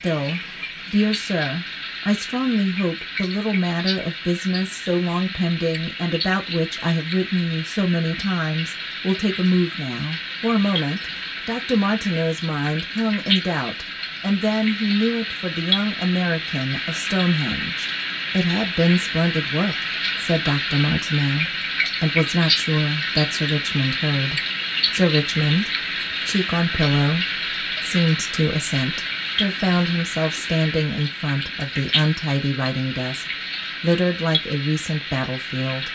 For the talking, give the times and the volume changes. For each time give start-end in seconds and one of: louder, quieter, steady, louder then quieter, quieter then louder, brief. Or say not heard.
0.0-35.9 steady.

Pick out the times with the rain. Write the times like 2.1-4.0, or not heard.
0.0-35.9.